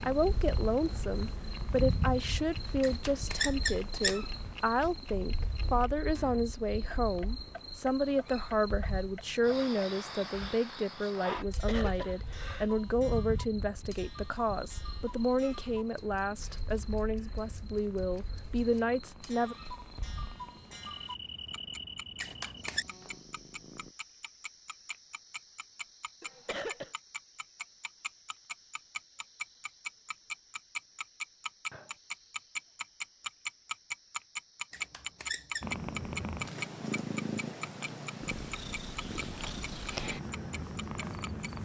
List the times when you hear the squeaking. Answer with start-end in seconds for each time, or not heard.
2.8-4.2, 22.2-22.9, 34.7-35.7.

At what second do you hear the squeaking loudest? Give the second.
4 s.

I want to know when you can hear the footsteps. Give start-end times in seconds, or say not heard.
not heard.